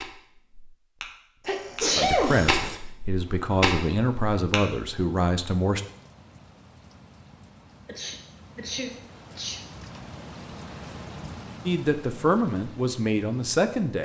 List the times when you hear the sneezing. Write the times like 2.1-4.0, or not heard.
1.4-2.8, 7.8-9.6.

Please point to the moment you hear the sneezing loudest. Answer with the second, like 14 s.
2 s.